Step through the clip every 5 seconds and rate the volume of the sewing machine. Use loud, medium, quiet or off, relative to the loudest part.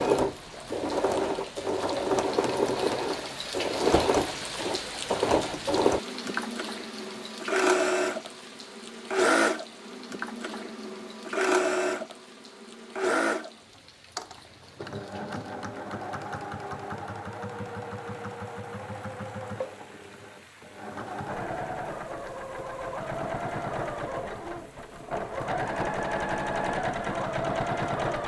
loud, loud, loud, medium, medium, loud.